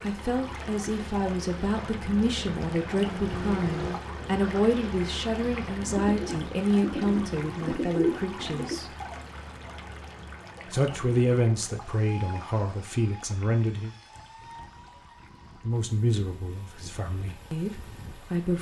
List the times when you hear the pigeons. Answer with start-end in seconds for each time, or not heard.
5.8-8.8.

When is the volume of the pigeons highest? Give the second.
8 s.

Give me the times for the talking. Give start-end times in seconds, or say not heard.
0.0-8.9, 10.7-13.9, 15.7-18.5.